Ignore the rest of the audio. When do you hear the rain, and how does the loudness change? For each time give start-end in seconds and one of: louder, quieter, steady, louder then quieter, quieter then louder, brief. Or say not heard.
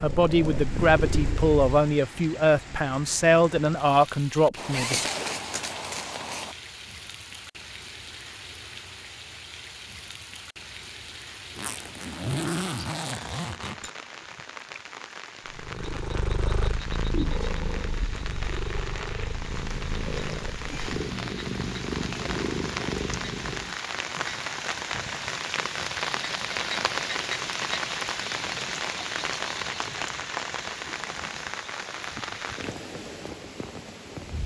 0.0-34.4 louder.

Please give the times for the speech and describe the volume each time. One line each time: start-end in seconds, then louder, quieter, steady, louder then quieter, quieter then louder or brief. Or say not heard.
0.0-5.0 steady.